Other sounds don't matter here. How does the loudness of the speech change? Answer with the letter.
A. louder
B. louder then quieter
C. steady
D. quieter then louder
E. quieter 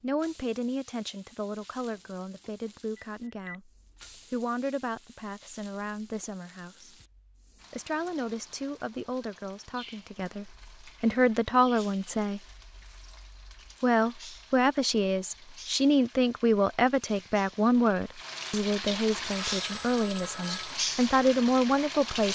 A.